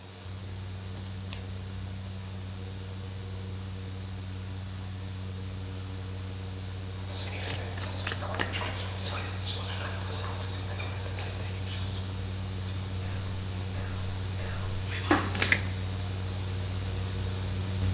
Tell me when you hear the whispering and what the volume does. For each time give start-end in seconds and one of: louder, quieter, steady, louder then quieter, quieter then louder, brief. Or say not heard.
7.0-15.2 quieter.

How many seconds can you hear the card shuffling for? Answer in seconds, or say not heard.
3 s.